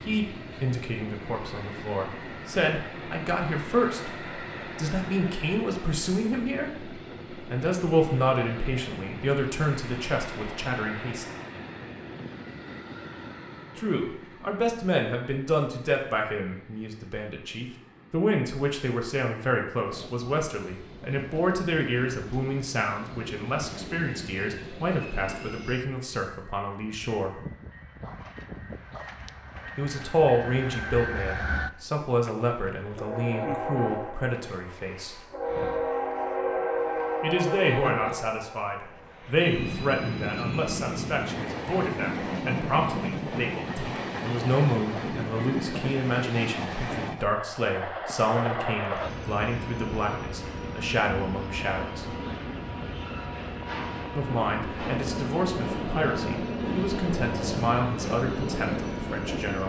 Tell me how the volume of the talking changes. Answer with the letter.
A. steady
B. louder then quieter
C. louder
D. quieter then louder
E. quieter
A.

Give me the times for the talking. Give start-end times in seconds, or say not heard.
0.0-11.2, 13.8-27.4, 29.8-35.2, 37.2-52.1, 54.1-59.6.